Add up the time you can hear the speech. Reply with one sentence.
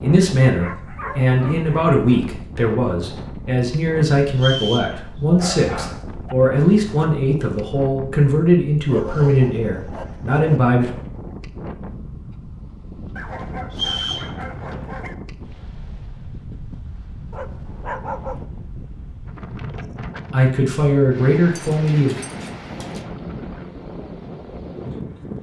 You can hear the speech for 13 seconds altogether.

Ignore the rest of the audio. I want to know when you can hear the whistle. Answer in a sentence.
You can hear the whistle from 4.3 to 5.0 s and from 13.7 to 14.3 s.